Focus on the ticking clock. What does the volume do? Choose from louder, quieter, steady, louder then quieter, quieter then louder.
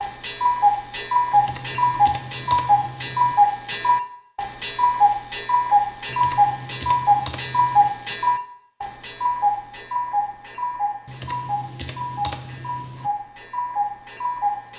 quieter.